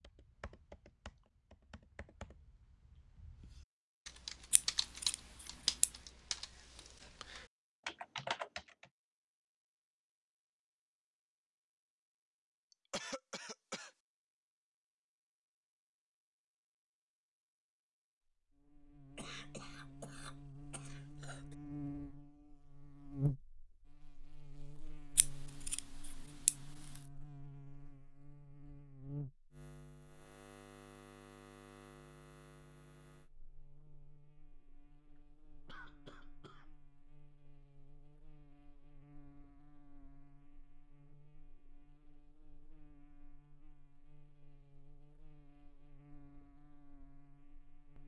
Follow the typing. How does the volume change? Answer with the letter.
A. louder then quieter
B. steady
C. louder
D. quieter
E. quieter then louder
C.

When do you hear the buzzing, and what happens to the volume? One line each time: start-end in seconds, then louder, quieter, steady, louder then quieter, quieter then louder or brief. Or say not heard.
18.5-48.0 quieter.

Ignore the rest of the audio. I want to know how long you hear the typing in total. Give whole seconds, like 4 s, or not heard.
9 s.